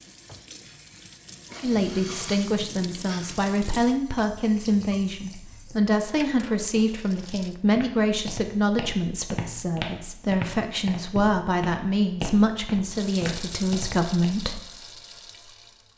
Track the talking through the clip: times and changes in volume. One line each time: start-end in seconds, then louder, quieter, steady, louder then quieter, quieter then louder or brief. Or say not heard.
1.6-14.6 steady.